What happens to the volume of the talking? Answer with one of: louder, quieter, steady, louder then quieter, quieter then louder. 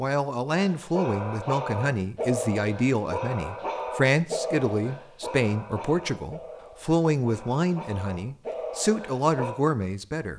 steady.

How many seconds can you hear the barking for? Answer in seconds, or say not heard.
9 s.